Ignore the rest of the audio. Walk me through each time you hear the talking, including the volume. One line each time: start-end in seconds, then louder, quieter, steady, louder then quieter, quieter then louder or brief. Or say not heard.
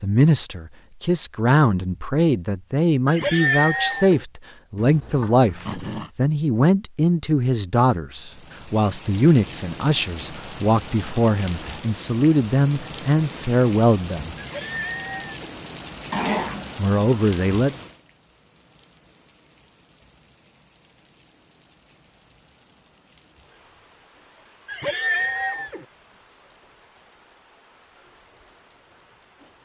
0.0-14.3 steady
16.8-17.8 brief.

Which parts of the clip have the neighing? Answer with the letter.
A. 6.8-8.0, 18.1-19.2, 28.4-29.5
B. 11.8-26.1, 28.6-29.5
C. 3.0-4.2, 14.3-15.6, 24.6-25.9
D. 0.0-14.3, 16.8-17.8
C.